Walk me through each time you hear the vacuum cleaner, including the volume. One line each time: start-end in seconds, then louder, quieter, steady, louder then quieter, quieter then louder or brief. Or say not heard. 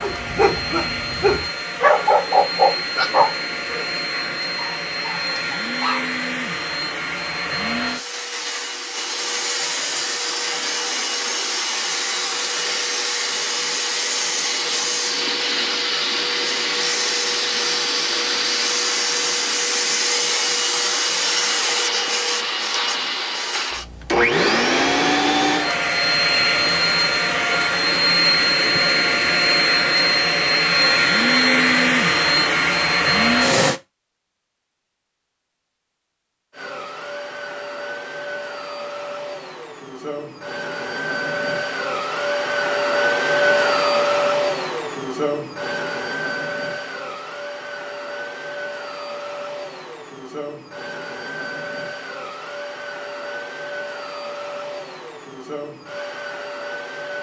0.0-33.8 louder
36.5-57.1 louder then quieter.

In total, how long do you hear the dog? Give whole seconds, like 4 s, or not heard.
6 s.